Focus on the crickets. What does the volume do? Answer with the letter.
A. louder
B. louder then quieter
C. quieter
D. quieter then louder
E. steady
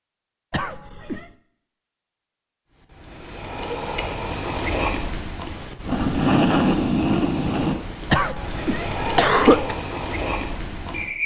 B.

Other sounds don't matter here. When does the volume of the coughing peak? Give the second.
9 s.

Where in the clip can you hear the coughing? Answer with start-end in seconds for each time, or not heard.
0.5-1.3, 8.1-9.8.